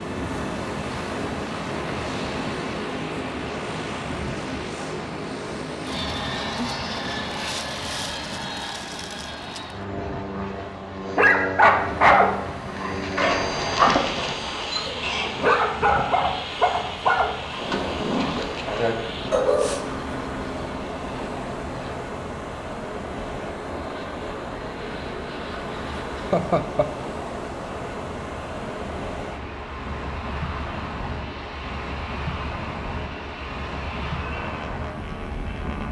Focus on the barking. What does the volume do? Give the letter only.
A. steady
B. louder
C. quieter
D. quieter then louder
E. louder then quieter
C.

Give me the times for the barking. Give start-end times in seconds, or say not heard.
11.2-19.9.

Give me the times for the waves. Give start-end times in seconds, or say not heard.
0.0-35.8.